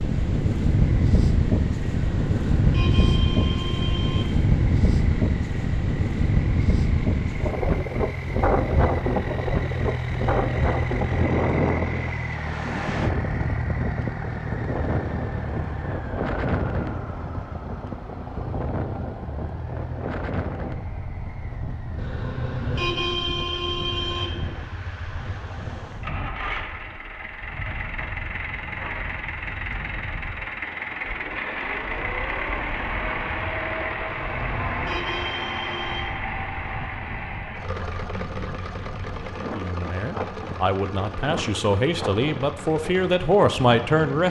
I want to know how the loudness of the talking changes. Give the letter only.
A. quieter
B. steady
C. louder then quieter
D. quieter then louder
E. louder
E.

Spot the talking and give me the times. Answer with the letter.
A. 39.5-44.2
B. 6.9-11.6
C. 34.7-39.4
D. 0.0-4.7
A.